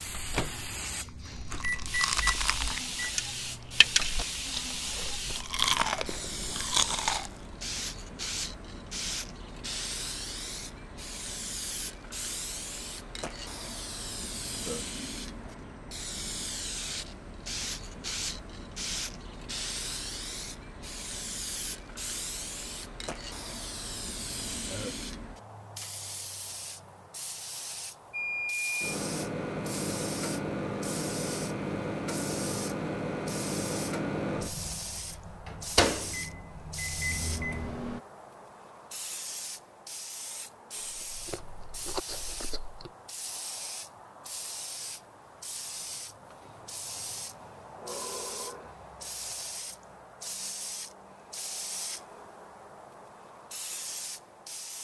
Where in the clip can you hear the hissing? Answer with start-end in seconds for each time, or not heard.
0.0-54.7.